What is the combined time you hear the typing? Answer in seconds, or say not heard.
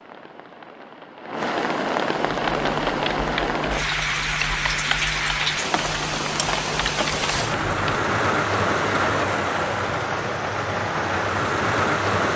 6 s.